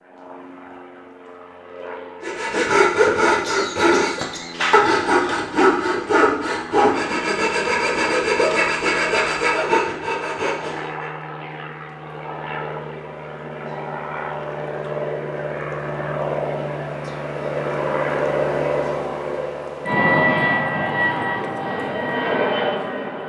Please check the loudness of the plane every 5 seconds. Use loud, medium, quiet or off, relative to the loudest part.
quiet, quiet, medium, loud, loud.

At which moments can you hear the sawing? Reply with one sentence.
The sawing can be heard from 2.2 to 11.1 s.